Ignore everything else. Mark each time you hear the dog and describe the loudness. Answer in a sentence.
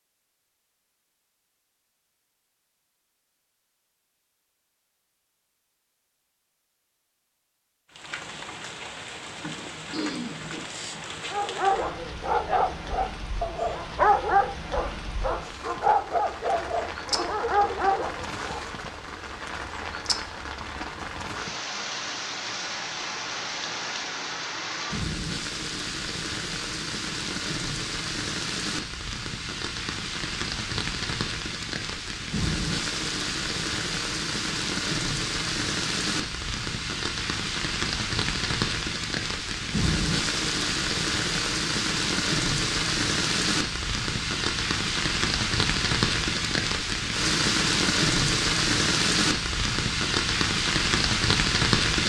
The dog can be heard from 11.3 to 18.6 s, at a steady volume.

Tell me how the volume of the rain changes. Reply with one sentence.
The loudness of the rain goes up.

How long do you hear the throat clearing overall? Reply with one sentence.
The throat clearing can be heard for 2 seconds in total.